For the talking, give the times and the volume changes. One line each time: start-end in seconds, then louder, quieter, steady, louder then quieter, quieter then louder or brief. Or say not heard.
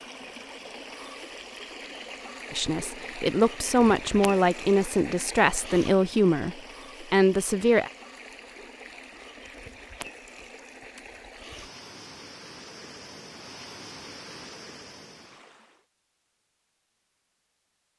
2.5-7.9 steady.